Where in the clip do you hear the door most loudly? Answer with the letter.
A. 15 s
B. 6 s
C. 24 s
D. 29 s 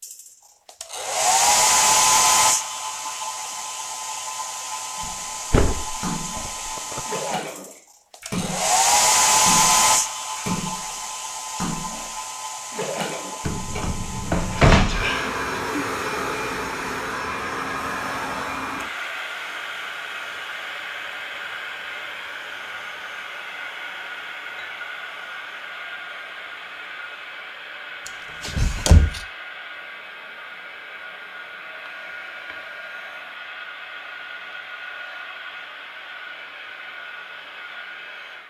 A.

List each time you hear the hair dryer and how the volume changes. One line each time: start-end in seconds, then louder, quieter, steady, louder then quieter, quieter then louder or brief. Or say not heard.
0.0-38.4 quieter.